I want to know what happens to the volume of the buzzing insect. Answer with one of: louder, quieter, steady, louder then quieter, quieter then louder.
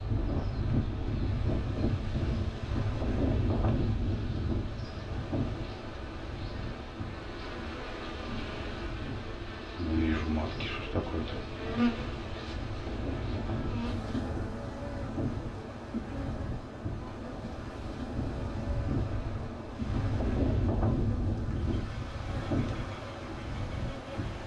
louder then quieter.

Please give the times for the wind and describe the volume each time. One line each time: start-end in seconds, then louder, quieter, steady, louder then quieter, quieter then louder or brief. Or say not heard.
0.0-24.4 quieter then louder.